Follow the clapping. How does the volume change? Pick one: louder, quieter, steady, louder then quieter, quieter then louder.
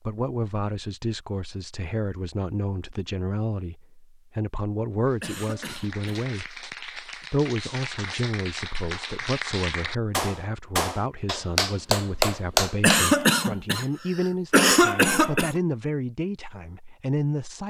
louder.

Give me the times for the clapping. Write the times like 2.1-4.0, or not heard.
5.0-12.9.